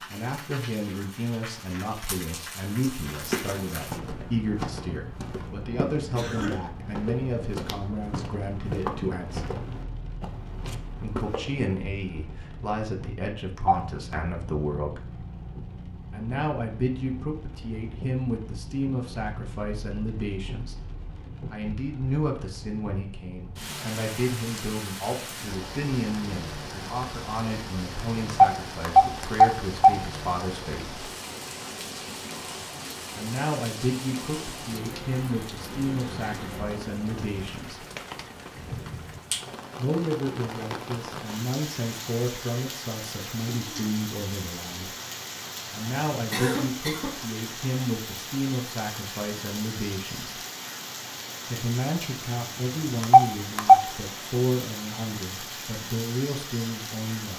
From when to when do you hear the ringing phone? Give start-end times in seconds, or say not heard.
13.6-14.2, 28.5-29.9, 53.0-53.8.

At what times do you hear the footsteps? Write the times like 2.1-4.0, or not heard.
3.1-11.6.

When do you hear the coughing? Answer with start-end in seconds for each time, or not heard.
6.2-6.7, 46.3-47.1.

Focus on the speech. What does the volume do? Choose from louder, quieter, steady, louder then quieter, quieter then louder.
steady.